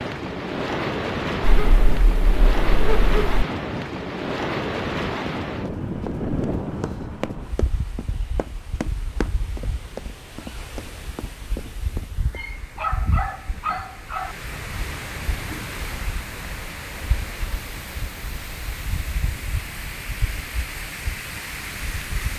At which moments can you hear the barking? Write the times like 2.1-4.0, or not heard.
1.4-3.5, 12.3-14.3.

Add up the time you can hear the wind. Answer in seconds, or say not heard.
22 s.